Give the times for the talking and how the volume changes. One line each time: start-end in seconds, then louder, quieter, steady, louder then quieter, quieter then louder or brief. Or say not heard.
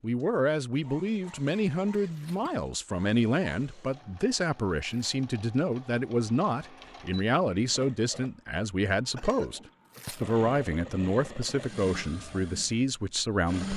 0.0-13.7 steady.